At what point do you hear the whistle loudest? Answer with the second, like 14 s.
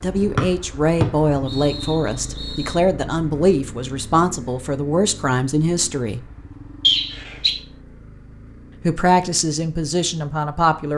7 s.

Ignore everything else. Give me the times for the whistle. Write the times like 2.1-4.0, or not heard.
0.3-2.8, 6.8-7.5.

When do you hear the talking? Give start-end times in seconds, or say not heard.
0.0-6.2, 8.8-10.9.